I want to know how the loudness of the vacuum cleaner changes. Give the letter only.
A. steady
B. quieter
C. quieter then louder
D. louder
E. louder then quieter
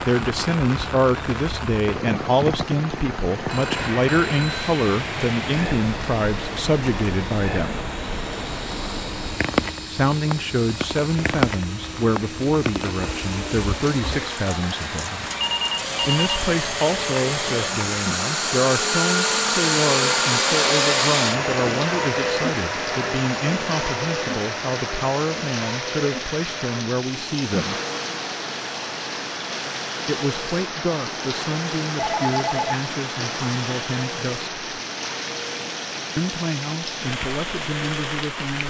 E.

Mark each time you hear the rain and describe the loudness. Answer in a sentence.
The rain can be heard from 0.0 to 38.6 s, at a steady volume.